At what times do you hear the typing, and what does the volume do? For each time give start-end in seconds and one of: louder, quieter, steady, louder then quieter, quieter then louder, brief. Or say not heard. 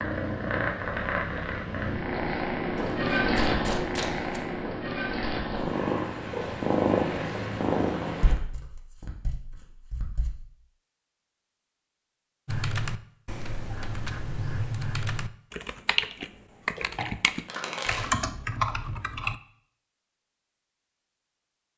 12.4-19.4 louder.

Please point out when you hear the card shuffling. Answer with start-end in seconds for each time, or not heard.
2.8-4.4, 8.2-10.3, 16.8-18.1.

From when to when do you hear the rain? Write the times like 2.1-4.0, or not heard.
not heard.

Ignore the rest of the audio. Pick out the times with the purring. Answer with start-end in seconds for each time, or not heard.
0.0-8.3.